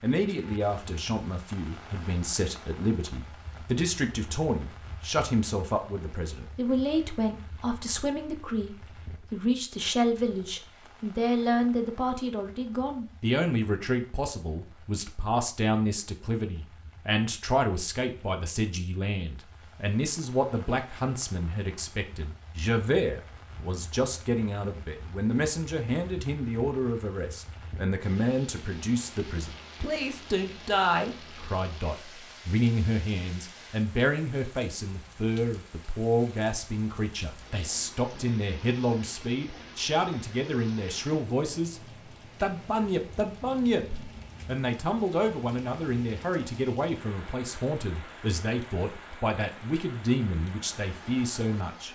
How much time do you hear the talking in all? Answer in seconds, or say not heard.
51 s.